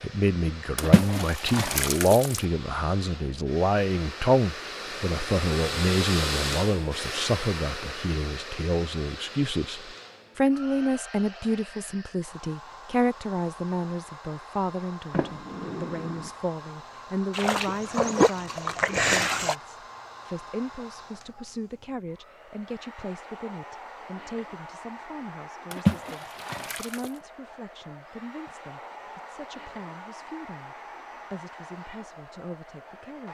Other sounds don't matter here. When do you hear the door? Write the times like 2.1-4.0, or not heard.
15.1-16.3.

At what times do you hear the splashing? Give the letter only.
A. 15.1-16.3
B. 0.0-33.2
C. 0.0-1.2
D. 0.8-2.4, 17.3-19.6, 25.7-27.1
D.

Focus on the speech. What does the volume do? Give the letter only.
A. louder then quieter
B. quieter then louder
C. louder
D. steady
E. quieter
E.